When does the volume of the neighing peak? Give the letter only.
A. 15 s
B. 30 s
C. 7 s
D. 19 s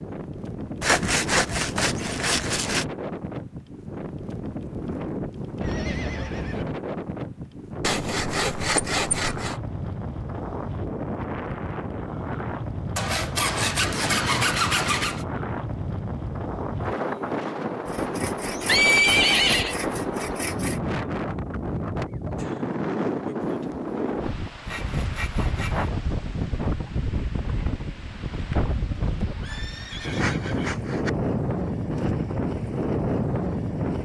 D.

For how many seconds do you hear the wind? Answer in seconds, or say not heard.
34 s.